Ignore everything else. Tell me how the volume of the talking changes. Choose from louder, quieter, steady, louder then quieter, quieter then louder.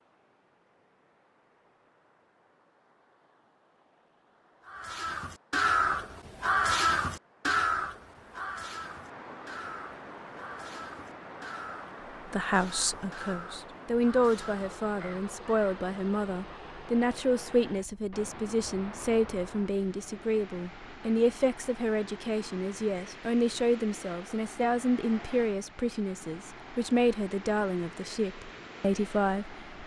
steady.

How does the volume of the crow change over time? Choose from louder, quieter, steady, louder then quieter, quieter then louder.
quieter.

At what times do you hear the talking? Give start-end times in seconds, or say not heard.
12.2-29.8.